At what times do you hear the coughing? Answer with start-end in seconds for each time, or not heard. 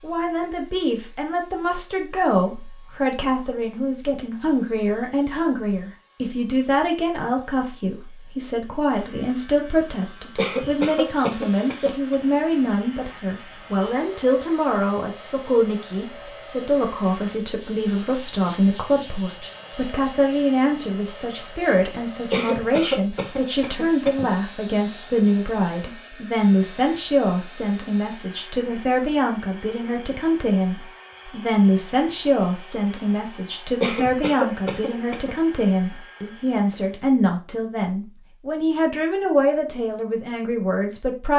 10.3-12.2, 22.3-24.2, 33.8-35.4.